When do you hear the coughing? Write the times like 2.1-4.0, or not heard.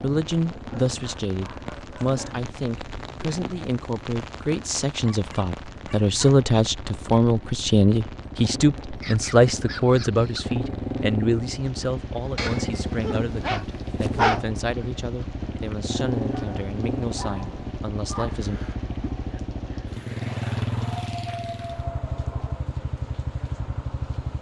not heard.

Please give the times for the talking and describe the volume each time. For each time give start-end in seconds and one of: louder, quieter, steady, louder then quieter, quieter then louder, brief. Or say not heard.
0.0-18.6 louder then quieter.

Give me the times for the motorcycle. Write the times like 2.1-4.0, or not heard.
0.0-24.3.